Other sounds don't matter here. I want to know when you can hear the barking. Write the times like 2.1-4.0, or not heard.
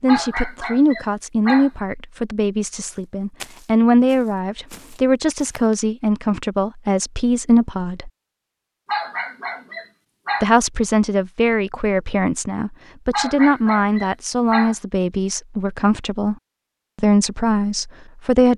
0.1-1.7, 8.8-10.5, 13.1-14.8.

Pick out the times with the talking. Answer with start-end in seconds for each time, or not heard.
0.0-8.1, 10.4-16.4, 16.9-18.5.